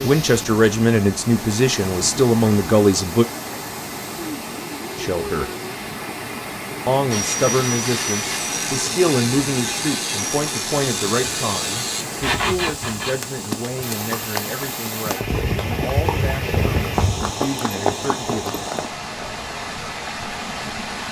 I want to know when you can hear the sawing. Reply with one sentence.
You can hear the sawing from 7.1 to 13.2 s.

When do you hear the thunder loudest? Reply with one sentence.
The volume of the thunder peaks at 17 seconds.